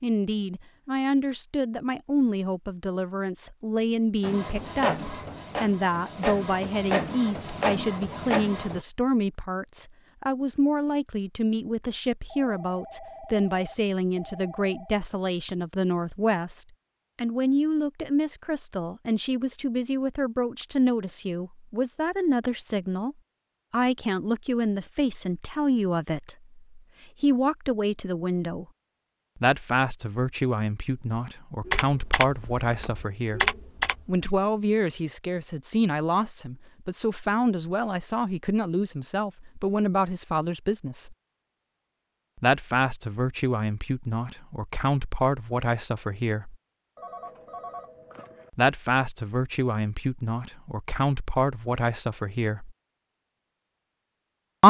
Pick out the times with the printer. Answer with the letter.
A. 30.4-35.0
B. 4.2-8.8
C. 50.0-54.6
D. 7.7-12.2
B.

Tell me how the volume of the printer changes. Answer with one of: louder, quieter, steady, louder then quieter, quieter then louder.
quieter then louder.